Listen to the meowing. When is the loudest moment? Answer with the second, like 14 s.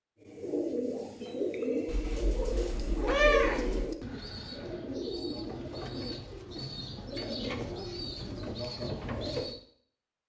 3 s.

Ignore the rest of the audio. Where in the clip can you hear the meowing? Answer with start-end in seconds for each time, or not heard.
1.9-3.9.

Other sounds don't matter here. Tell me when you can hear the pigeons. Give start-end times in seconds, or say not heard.
0.2-9.6.